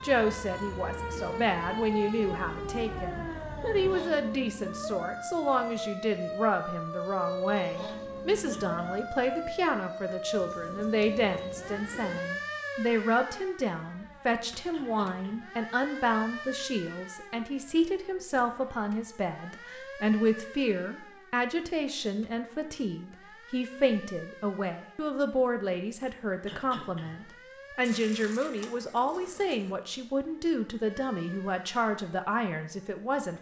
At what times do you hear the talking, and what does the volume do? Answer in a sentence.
The talking can be heard from 0.0 to 33.3 s, at a steady volume.